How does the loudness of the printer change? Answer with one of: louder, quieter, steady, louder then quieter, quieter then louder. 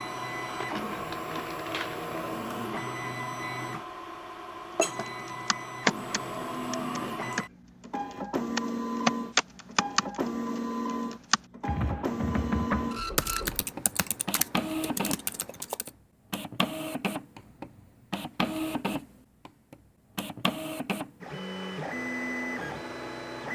steady.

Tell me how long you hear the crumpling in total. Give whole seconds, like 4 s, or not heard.
2 s.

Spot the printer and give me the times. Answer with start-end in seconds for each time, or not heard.
0.0-23.5.